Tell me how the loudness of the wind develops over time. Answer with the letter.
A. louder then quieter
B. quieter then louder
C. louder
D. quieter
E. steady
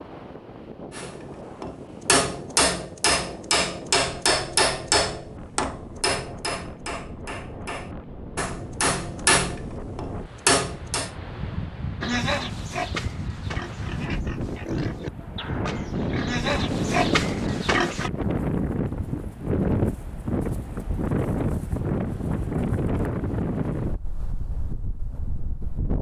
C.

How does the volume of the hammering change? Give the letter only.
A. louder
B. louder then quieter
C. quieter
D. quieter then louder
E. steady
D.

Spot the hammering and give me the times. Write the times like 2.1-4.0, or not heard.
0.9-11.1.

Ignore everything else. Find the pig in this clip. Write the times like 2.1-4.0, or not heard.
12.0-18.1.